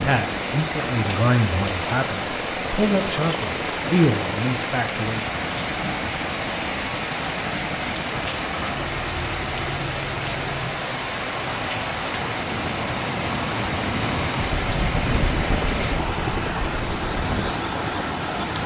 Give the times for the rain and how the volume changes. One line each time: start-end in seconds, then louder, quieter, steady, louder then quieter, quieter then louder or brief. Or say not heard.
0.0-18.6 steady.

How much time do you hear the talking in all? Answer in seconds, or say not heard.
5 s.